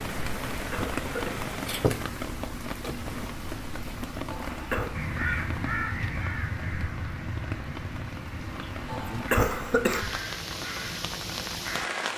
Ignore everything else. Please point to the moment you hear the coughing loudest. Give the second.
9 s.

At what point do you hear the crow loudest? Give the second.
5 s.